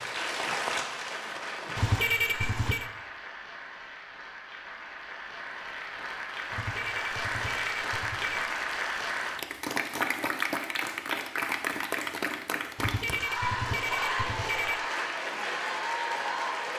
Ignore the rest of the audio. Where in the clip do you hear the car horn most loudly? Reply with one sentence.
The volume of the car horn peaks at 2 seconds.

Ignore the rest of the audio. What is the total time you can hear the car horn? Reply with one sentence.
The car horn can be heard for 5 seconds in total.